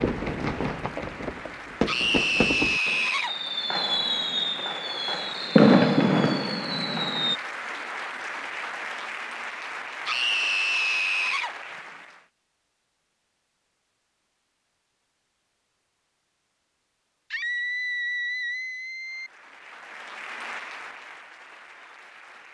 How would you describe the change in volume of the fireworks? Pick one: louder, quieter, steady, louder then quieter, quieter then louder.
louder.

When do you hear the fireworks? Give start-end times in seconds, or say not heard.
0.0-7.3.